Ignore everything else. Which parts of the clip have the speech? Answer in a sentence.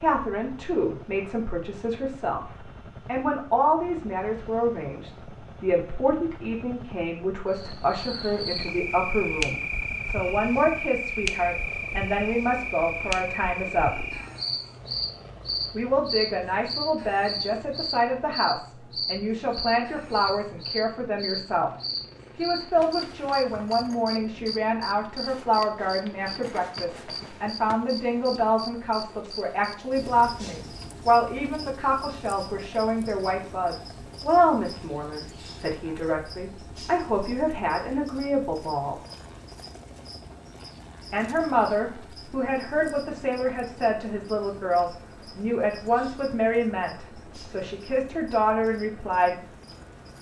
The speech can be heard from 0.0 to 14.1 s, from 15.7 to 21.7 s, from 22.4 to 39.0 s and from 41.1 to 49.4 s.